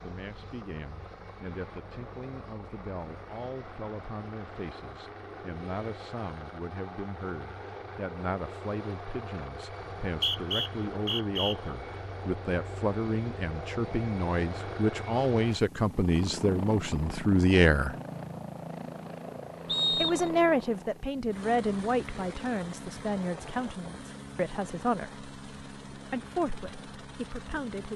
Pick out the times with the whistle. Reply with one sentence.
The whistle can be heard from 9.8 to 11.6 s and from 19.6 to 20.4 s.